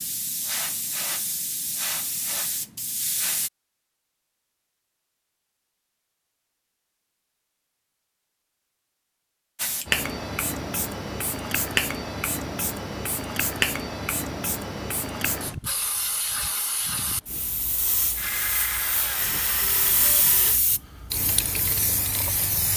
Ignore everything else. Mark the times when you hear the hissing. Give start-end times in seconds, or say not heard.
0.0-3.5, 9.6-22.7.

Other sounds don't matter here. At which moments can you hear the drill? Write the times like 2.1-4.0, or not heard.
18.1-20.6.